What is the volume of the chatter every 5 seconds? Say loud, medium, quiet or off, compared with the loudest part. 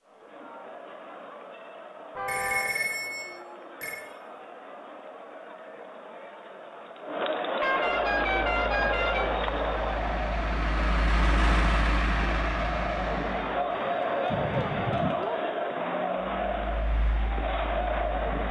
quiet, loud, loud, loud.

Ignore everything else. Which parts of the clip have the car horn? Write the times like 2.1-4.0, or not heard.
2.1-2.8, 7.6-9.3, 14.3-15.2.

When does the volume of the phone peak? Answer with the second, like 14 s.
3 s.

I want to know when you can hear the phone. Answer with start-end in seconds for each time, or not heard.
2.2-4.0, 13.7-15.2.